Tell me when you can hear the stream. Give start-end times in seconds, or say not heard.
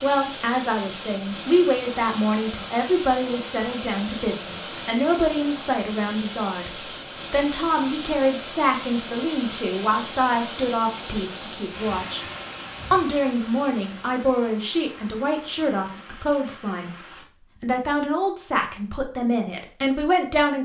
0.0-17.2.